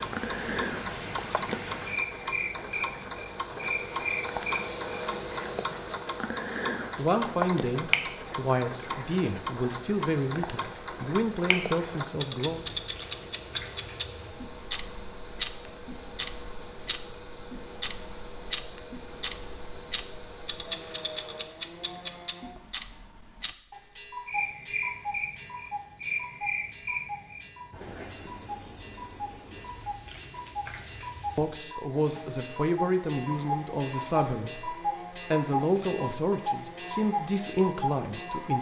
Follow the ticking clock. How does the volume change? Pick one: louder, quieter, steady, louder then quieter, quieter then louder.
quieter then louder.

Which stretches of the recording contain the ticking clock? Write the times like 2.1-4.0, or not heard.
0.0-38.5.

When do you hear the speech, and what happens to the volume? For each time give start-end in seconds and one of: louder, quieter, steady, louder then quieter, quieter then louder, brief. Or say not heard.
7.0-12.7 steady
31.4-38.5 steady.